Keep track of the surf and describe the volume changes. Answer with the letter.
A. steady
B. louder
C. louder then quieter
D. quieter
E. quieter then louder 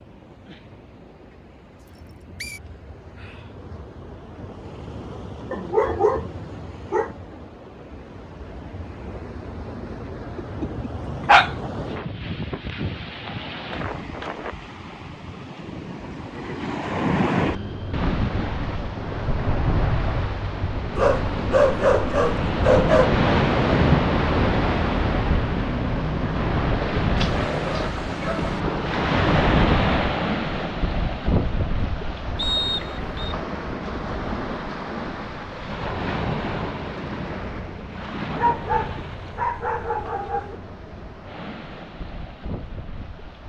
C.